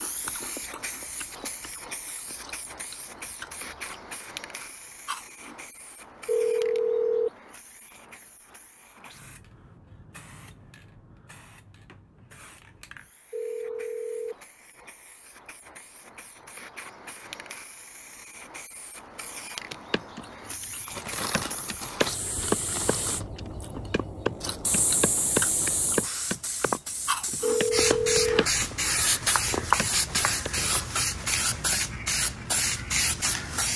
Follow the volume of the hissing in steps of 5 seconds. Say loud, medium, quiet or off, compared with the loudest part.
quiet, quiet, quiet, quiet, medium, loud, loud.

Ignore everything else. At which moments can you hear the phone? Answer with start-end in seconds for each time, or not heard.
6.2-7.3, 13.3-14.3, 27.4-28.4.